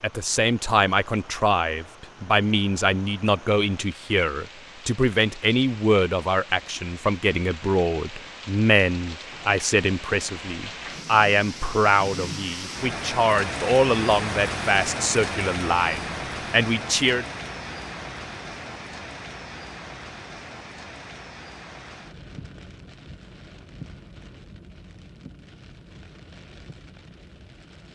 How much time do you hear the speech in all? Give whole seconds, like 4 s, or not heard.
17 s.